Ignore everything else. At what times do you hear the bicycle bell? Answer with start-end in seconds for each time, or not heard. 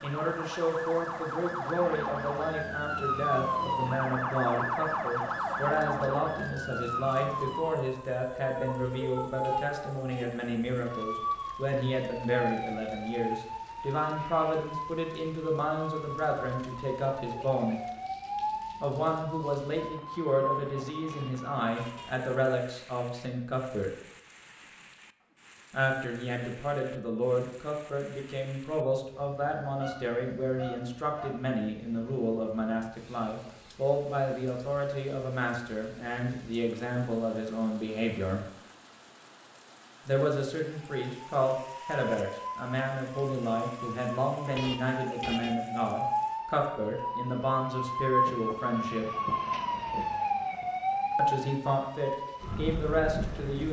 not heard.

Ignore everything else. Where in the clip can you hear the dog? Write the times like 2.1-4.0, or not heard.
29.8-31.4.